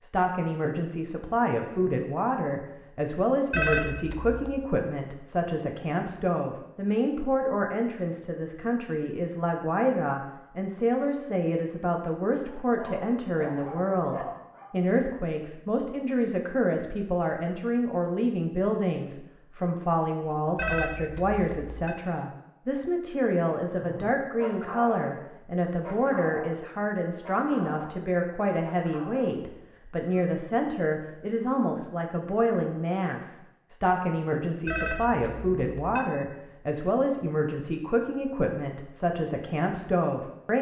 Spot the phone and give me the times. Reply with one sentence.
You can hear the phone from 3.5 to 4.6 s, from 20.6 to 21.9 s and from 34.6 to 36.0 s.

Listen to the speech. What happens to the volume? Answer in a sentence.
The volume of the speech stays about the same.